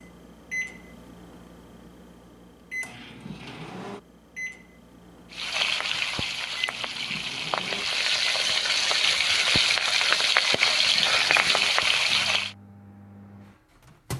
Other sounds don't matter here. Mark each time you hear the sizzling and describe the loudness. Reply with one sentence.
The sizzling can be heard from 5.3 to 12.6 s, getting louder.